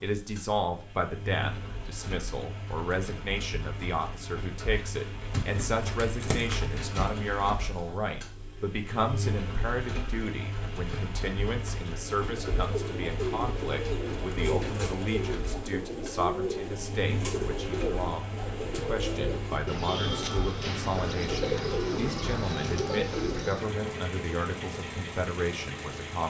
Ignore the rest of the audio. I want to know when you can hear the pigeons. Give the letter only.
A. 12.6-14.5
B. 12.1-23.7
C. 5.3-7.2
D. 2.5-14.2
B.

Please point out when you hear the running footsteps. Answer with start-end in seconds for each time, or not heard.
not heard.